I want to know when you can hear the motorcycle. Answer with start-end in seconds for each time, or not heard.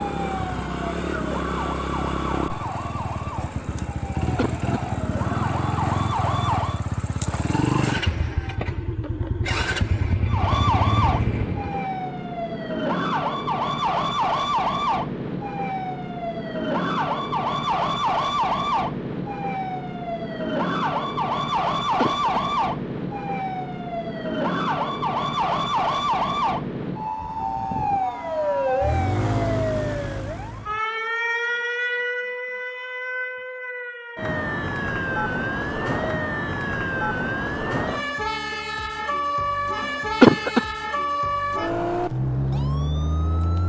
0.0-11.8.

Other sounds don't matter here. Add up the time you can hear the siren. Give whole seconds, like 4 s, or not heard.
40 s.